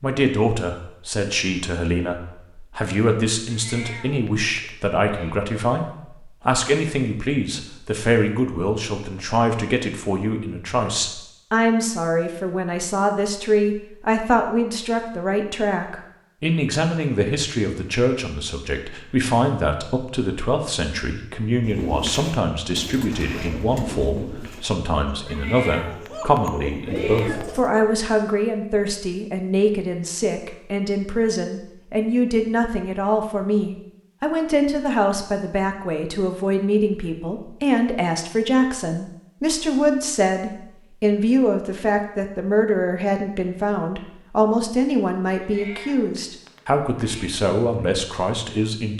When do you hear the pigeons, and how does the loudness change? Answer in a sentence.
You can hear the pigeons from 21.6 to 27.7 s, getting quieter then louder.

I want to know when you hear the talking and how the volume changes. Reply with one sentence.
The talking can be heard from 0.0 to 48.9 s, at a steady volume.